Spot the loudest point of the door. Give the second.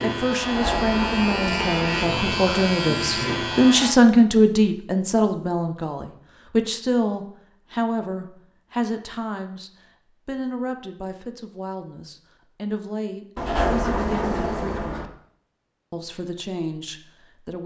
14 s.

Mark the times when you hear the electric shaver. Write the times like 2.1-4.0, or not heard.
0.0-4.0.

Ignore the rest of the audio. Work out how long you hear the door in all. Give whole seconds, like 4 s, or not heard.
3 s.